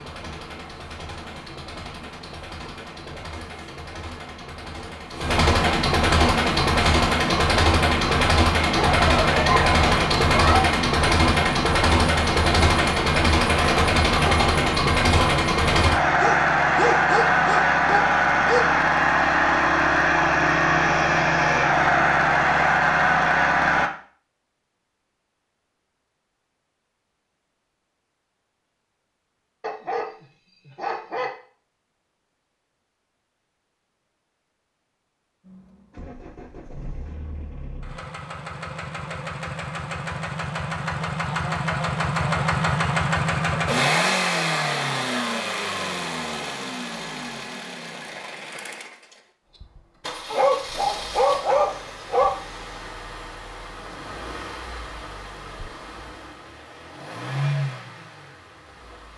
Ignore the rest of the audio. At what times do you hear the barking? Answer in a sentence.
You can hear the barking from 8.8 to 10.7 s, from 16.2 to 18.6 s, from 29.6 to 31.3 s and from 50.3 to 52.3 s.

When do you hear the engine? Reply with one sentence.
You can hear the engine from 0.0 to 23.9 s and from 35.5 to 59.1 s.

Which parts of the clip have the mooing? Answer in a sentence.
You can't hear the mooing here.